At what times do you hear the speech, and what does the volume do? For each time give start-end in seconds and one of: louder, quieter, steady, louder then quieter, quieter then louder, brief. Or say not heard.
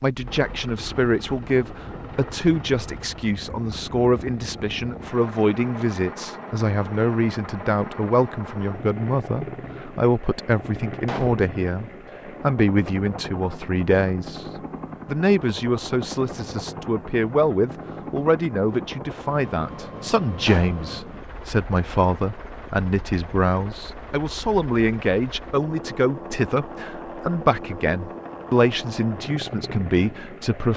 0.0-30.7 steady.